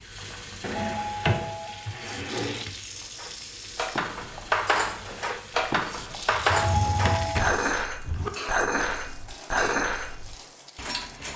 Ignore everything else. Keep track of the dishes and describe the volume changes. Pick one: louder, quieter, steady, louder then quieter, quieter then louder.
steady.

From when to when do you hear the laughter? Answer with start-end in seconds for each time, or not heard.
not heard.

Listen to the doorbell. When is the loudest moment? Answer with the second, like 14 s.
7 s.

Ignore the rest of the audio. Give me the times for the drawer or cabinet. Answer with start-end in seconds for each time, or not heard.
0.6-2.6, 6.3-8.3.